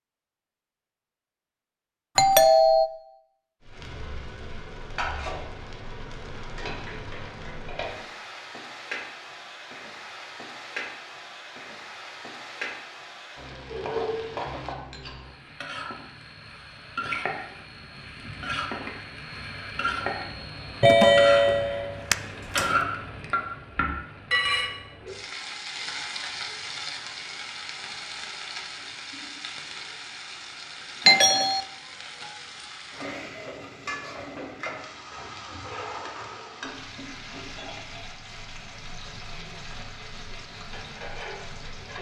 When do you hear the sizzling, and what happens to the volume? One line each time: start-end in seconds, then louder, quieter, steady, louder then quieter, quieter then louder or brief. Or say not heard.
3.6-41.9 louder then quieter.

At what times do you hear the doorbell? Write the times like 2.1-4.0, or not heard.
2.1-2.9, 20.8-22.8, 31.1-31.6.